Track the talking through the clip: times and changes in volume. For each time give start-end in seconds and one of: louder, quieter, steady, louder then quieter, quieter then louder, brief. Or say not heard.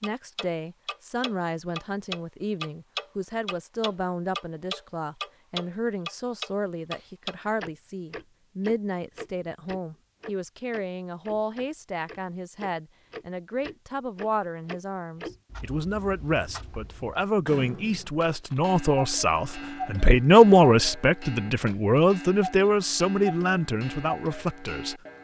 0.0-25.0 louder.